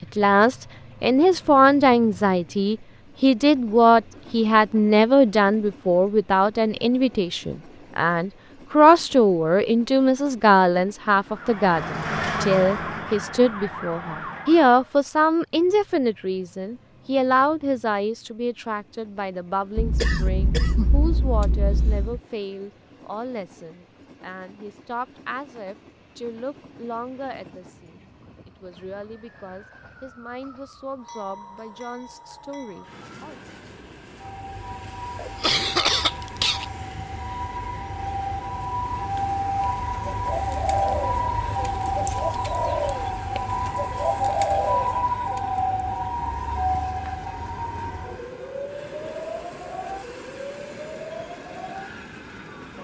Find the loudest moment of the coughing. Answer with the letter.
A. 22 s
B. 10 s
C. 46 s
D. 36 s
D.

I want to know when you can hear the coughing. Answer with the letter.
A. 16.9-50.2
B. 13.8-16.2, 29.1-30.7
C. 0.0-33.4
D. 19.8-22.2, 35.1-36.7
D.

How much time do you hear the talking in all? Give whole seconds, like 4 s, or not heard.
33 s.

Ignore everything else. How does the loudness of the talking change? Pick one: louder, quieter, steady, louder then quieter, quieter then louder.
quieter.